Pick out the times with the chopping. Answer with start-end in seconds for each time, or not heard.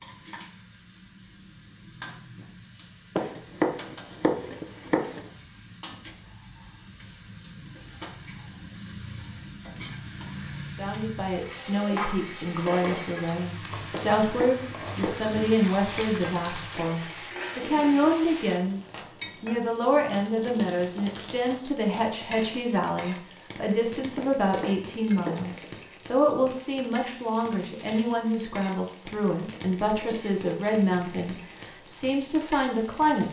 3.1-5.2, 13.9-15.3, 24.1-25.6.